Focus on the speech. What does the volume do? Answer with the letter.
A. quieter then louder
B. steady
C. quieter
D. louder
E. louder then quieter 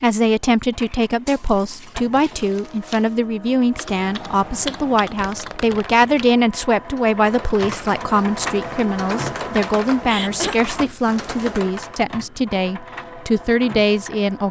B.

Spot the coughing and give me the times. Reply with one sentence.
You can hear the coughing from 10.0 to 10.6 s.